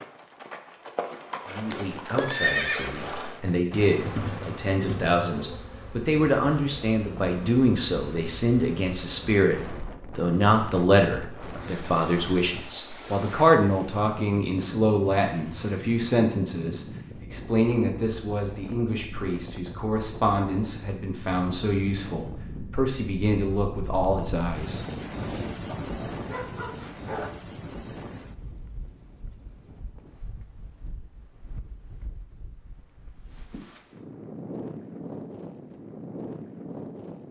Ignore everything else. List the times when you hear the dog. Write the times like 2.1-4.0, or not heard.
25.6-27.3.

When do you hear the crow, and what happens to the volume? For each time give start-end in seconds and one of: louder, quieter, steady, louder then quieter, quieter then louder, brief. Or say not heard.
not heard.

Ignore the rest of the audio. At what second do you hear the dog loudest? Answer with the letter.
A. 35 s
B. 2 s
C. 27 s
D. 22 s
C.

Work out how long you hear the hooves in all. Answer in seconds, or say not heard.
5 s.